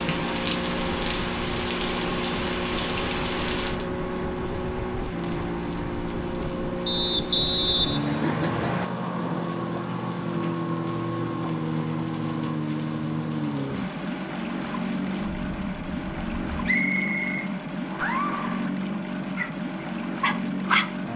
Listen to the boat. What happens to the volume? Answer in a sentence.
The volume of the boat stays about the same.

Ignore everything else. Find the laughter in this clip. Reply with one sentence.
You can hear the laughter from 8.1 to 8.9 s and from 17.9 to 18.8 s.